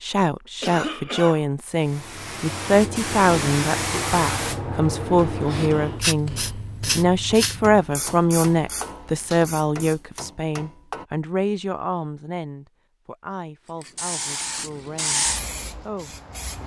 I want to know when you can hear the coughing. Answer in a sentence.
The coughing can be heard from 0.6 to 1.4 s.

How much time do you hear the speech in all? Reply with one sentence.
The speech can be heard for 15 seconds in total.